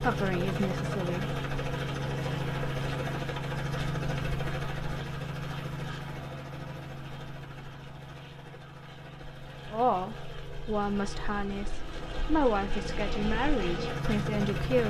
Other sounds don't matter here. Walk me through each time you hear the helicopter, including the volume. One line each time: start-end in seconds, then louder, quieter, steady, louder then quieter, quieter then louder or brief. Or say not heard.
0.0-14.8 quieter then louder.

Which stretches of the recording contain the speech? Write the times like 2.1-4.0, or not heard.
0.0-1.3, 9.7-14.8.